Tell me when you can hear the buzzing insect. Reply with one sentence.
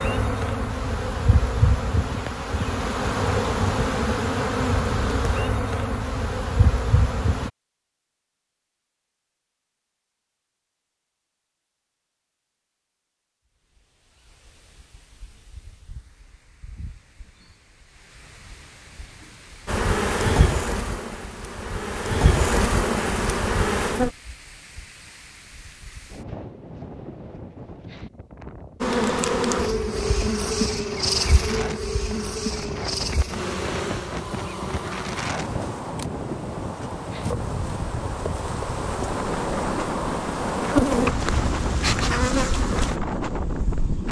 You can hear the buzzing insect from 0.0 to 7.5 s, from 19.6 to 24.1 s and from 28.8 to 44.0 s.